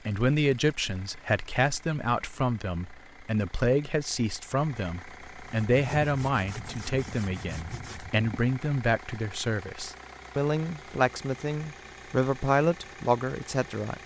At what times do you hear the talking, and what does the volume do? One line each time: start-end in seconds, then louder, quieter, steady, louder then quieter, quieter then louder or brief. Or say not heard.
0.1-14.0 steady.